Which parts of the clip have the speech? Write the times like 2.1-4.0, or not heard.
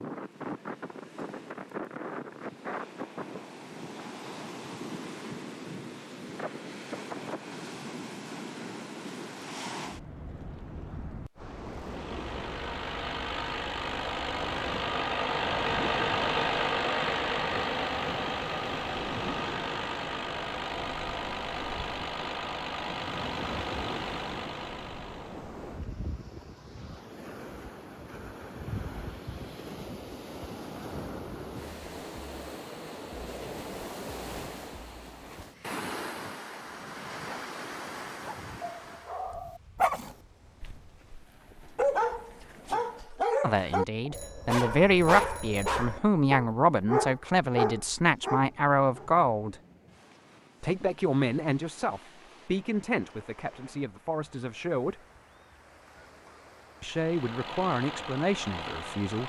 43.4-49.5, 50.6-55.0, 56.8-59.2.